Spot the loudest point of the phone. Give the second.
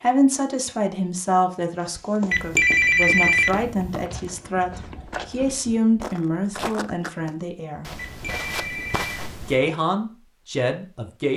3 s.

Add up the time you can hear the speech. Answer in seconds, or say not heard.
10 s.